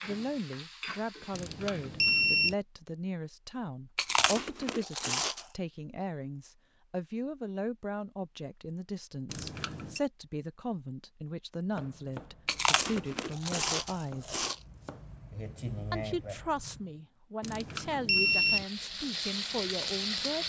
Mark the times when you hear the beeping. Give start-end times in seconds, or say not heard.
1.3-2.5, 9.3-10.0, 17.4-18.6.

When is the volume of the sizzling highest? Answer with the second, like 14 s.
20 s.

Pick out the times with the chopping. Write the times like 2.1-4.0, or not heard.
11.6-17.0.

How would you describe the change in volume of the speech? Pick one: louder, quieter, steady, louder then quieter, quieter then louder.
steady.